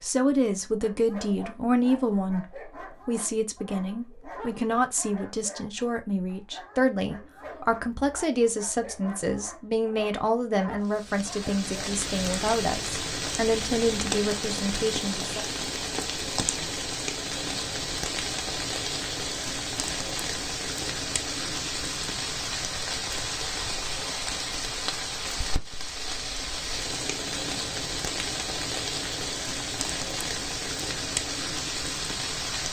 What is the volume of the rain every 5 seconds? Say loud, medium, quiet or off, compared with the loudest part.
off, off, loud, loud, loud, loud, loud.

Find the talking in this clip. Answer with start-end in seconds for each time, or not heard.
0.0-15.4.